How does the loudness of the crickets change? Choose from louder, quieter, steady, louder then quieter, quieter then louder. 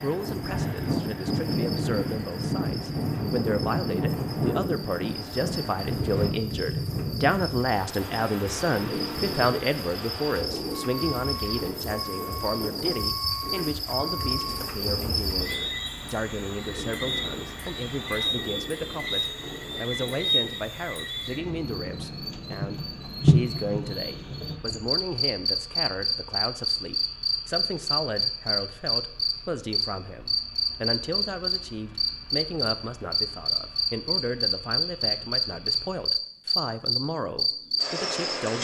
louder.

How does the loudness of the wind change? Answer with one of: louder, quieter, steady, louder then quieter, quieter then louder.
quieter.